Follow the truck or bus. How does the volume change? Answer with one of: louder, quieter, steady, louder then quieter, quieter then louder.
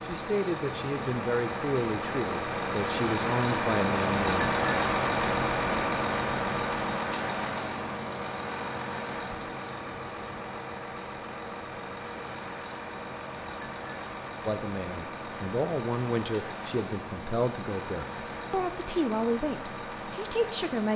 quieter.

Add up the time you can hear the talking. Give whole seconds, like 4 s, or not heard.
11 s.